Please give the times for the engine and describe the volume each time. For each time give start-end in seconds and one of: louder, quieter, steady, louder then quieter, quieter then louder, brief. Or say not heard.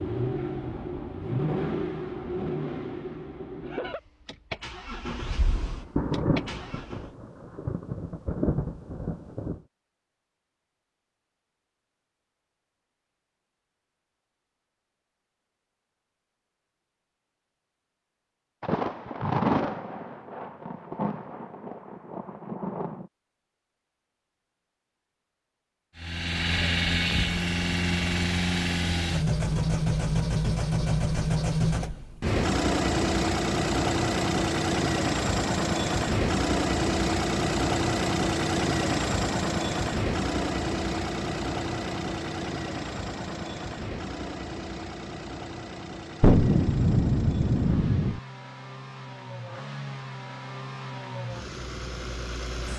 0.0-7.1 quieter
25.9-52.7 quieter.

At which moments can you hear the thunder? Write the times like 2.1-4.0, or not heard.
5.0-9.6, 18.6-23.1, 46.2-48.2.